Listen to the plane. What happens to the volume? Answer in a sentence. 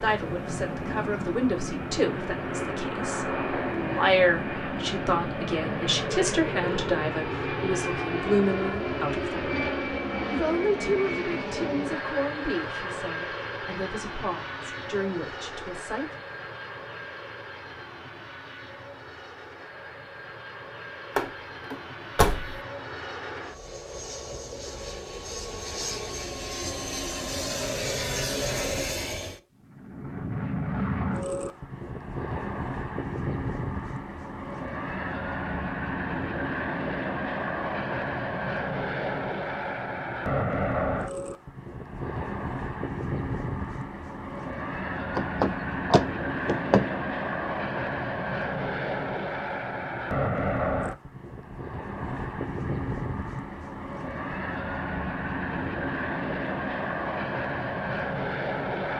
The loudness of the plane goes down, then up.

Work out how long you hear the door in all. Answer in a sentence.
The door can be heard for 3 seconds in total.